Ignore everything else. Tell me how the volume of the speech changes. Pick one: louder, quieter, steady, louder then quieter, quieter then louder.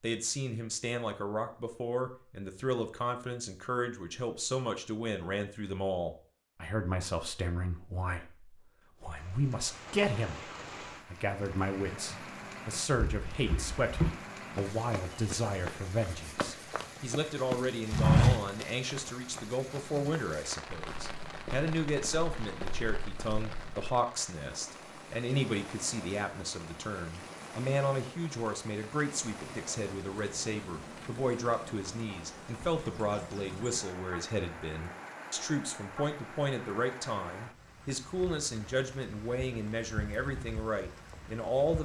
steady.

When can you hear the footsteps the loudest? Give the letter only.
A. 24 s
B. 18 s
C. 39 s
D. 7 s
B.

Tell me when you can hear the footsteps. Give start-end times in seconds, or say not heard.
12.9-24.0.